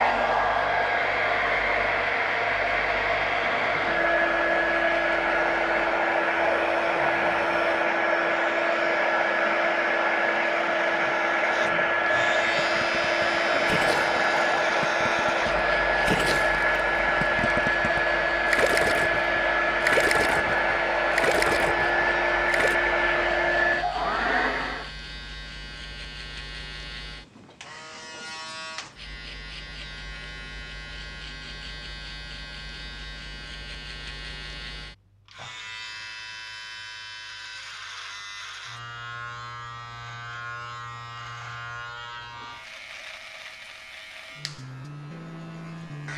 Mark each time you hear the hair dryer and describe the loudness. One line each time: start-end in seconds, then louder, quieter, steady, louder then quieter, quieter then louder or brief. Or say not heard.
0.0-24.9 steady.